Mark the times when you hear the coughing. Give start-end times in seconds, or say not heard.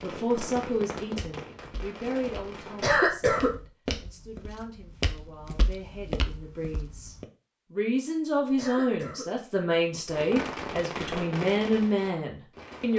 2.8-3.5, 8.6-9.2.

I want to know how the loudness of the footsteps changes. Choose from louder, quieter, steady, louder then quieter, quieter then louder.
louder.